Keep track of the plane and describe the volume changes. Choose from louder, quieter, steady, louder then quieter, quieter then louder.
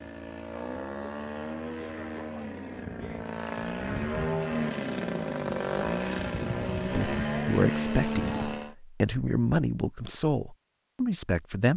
louder.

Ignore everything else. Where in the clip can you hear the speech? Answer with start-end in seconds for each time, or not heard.
6.8-11.7.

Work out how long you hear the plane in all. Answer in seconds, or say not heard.
9 s.